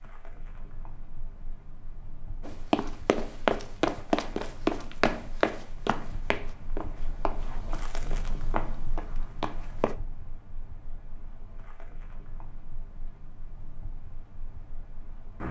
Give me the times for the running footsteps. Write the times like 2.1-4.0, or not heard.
2.4-9.9.